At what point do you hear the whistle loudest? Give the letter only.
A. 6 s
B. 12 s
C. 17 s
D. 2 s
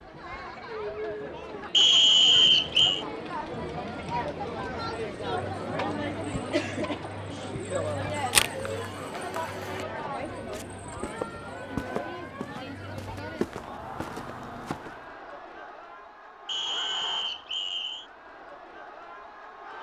D.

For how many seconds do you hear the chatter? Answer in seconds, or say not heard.
20 s.